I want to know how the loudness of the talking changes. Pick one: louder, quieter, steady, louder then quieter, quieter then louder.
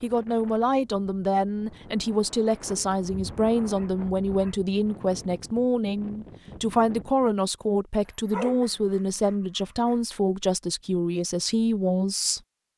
steady.